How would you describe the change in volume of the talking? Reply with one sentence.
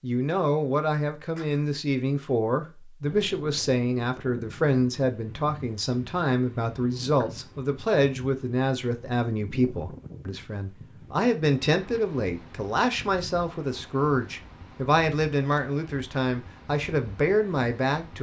The volume of the talking stays about the same.